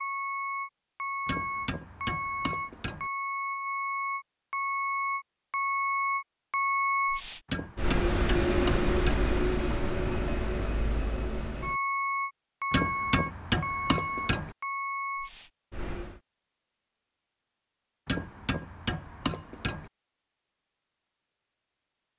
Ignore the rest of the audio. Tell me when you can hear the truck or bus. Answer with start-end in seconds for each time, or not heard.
0.0-16.2.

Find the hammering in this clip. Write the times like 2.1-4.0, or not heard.
1.2-3.1, 7.5-9.3, 12.7-14.6, 18.1-19.9.